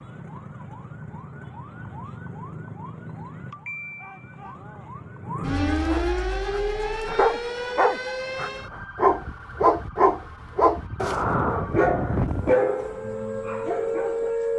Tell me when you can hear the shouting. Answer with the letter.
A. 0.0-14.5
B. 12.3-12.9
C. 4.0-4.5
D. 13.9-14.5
C.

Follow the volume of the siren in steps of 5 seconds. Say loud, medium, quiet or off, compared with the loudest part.
medium, loud, loud.